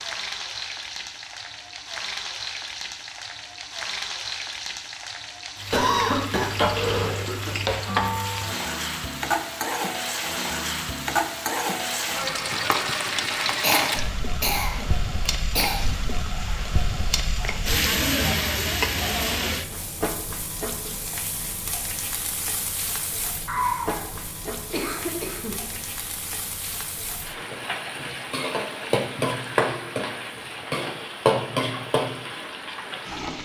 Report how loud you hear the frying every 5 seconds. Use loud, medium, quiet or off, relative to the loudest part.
medium, loud, loud, loud, medium, loud, loud.